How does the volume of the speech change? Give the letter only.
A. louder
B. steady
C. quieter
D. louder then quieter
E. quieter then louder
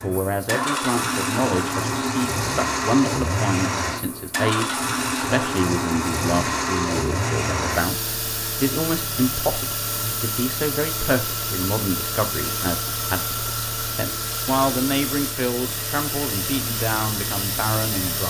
B.